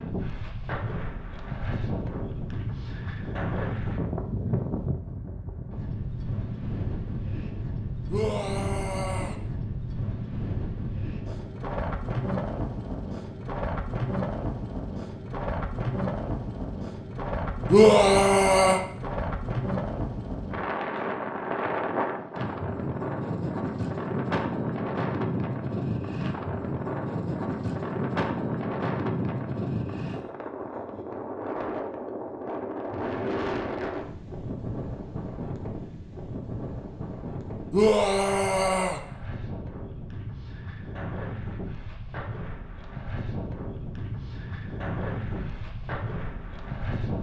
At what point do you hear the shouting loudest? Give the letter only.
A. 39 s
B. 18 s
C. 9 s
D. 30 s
B.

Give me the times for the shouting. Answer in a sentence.
You can hear the shouting from 8.1 to 9.3 s, from 17.7 to 18.8 s and from 37.7 to 39.0 s.